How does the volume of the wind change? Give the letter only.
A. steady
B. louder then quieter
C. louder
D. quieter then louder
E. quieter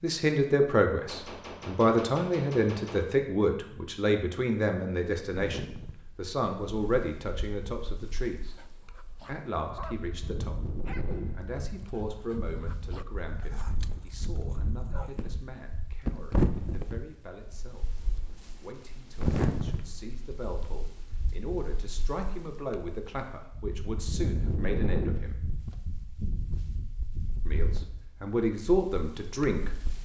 B.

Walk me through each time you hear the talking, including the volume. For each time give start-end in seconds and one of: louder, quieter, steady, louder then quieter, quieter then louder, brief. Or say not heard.
0.0-8.6 quieter
9.2-25.4 quieter then louder
27.4-30.0 brief.